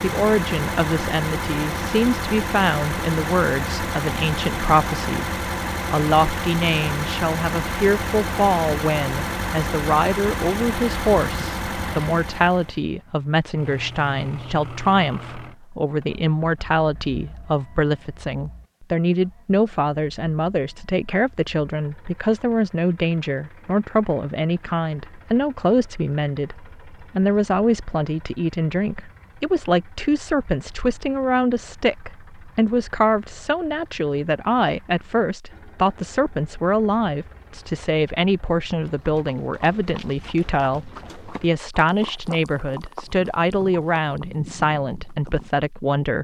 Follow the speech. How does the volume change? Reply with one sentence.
The volume of the speech stays about the same.